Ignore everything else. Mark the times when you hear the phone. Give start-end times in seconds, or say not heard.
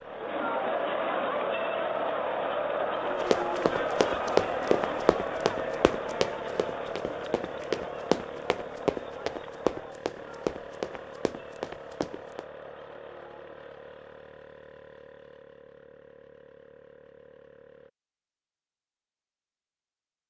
not heard.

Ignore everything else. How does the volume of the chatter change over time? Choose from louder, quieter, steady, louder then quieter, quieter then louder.
quieter.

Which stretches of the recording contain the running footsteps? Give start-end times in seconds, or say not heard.
3.3-12.4.